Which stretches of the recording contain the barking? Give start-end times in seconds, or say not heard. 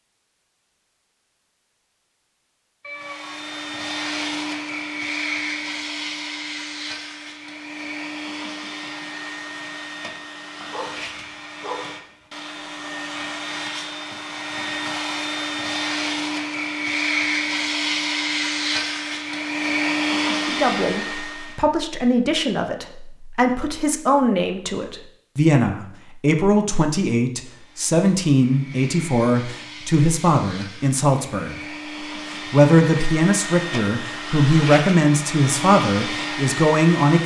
10.6-11.9.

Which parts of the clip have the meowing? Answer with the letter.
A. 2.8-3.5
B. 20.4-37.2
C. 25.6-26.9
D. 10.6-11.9
A.